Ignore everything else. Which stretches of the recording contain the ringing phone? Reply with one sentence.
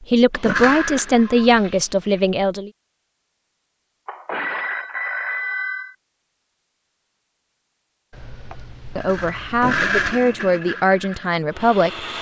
The ringing phone can be heard from 0.3 to 2.2 s, from 4.0 to 6.0 s and from 8.1 to 10.2 s.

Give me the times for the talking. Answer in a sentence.
You can hear the talking from 0.1 to 2.7 s and from 8.9 to 12.1 s.